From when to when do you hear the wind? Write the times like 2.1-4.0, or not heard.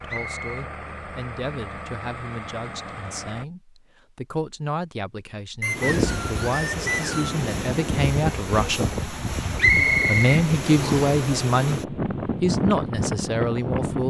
5.7-14.0.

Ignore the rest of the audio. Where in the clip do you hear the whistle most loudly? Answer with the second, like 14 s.
10 s.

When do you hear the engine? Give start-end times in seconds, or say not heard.
0.0-3.5.